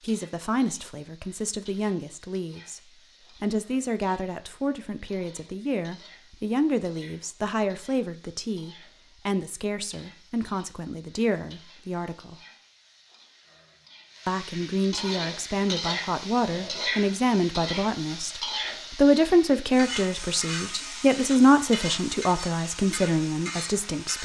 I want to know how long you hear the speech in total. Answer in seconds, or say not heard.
22 s.